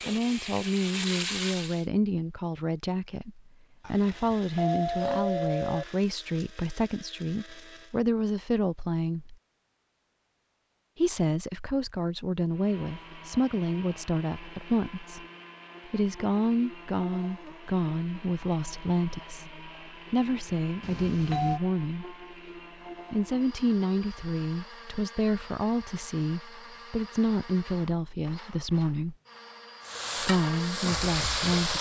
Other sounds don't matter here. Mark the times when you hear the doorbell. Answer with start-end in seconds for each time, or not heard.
3.8-5.8, 20.8-21.6.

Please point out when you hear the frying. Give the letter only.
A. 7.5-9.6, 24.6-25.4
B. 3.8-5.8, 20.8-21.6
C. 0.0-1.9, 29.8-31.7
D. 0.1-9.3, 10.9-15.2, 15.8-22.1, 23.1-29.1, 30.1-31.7
C.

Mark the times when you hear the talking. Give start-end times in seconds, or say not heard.
0.1-9.3, 10.9-15.2, 15.8-22.1, 23.1-29.1, 30.1-31.7.